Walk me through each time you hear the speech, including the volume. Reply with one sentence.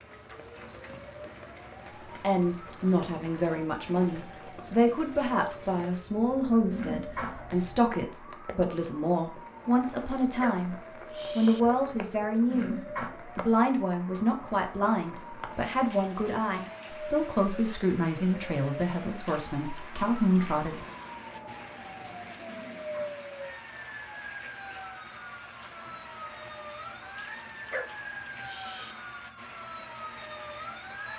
You can hear the speech from 2.2 to 10.8 s, at a steady volume; and from 11.3 to 20.9 s, at a steady volume.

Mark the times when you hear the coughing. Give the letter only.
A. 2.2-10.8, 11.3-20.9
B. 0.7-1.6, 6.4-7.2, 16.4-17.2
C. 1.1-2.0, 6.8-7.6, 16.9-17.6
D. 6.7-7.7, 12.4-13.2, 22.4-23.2
D.